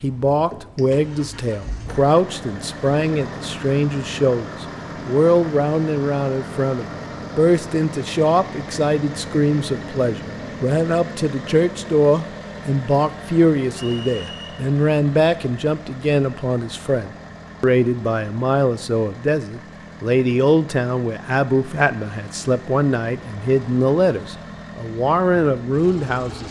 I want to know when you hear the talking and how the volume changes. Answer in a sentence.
The talking can be heard from 0.0 to 26.4 s, at a steady volume.